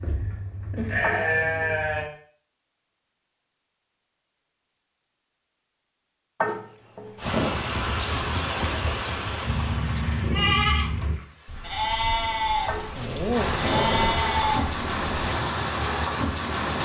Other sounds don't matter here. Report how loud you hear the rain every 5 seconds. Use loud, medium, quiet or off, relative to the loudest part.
off, loud, loud, loud.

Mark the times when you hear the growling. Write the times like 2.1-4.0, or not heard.
1.0-1.9, 6.4-7.5, 12.7-14.3.